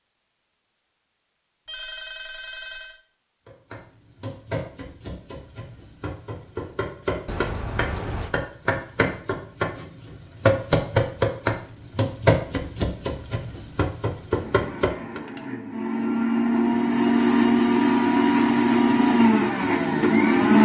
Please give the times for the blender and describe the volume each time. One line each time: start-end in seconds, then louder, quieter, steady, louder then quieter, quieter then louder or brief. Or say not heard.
14.3-20.5 louder.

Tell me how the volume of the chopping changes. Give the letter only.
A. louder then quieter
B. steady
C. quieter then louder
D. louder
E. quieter
A.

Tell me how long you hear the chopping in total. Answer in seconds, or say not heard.
12 s.